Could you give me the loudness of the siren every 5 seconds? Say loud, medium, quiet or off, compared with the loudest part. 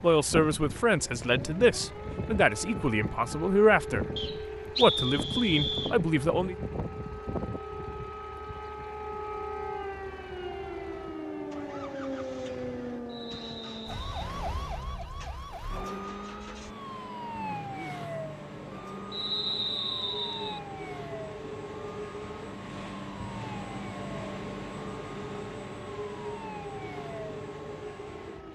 loud, loud, loud, loud, medium, medium.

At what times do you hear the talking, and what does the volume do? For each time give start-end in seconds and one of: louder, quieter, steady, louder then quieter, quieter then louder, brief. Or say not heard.
0.0-4.0 quieter then louder
4.8-6.5 brief.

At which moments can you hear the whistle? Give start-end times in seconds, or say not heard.
4.2-6.0, 13.1-14.3, 19.1-20.6.